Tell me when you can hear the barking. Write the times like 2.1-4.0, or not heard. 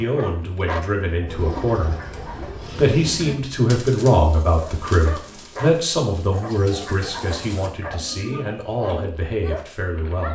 0.0-2.5, 4.5-10.3.